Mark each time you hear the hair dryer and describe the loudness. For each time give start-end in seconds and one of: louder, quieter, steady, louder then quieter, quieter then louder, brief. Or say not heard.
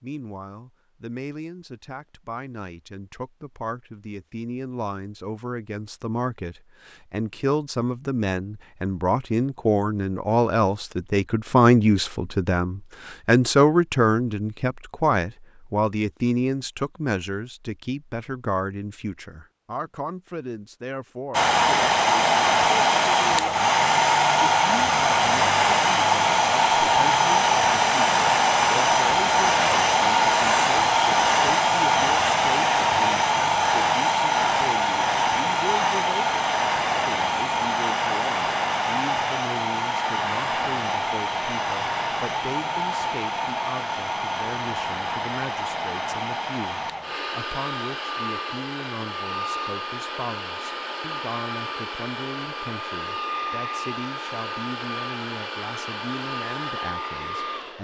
21.3-57.7 quieter.